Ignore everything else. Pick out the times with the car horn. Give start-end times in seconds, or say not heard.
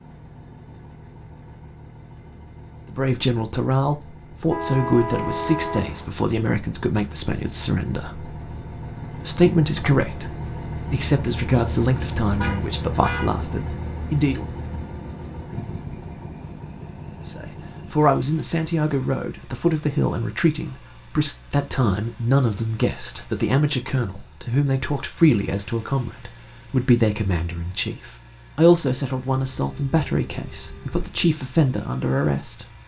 4.5-6.1, 12.3-13.3, 29.4-31.1.